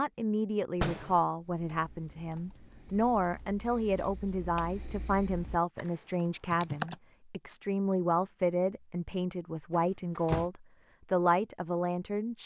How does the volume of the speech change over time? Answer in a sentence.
The loudness of the speech stays about the same.